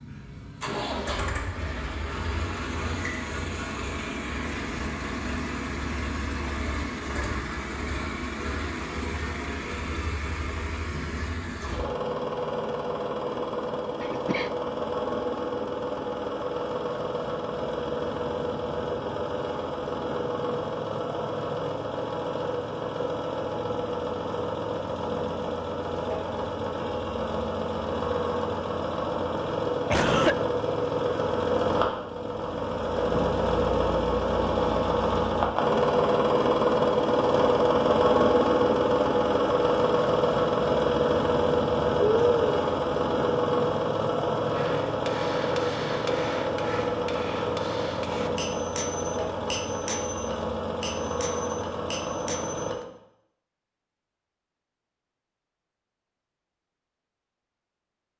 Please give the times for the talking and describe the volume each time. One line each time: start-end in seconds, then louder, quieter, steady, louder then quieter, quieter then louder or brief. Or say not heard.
not heard.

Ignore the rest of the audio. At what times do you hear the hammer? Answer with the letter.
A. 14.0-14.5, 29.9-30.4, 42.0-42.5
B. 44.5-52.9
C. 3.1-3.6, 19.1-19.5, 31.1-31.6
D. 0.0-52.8
B.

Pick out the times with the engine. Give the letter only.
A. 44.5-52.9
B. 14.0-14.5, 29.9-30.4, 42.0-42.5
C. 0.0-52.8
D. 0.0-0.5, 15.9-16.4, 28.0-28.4
C.